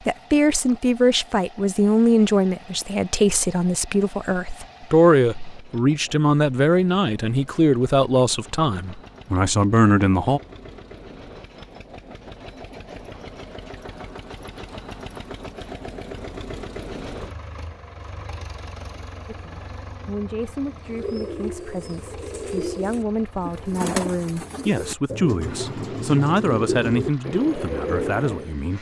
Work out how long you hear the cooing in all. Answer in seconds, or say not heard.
8 s.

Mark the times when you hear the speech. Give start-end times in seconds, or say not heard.
0.1-10.4, 19.2-28.7.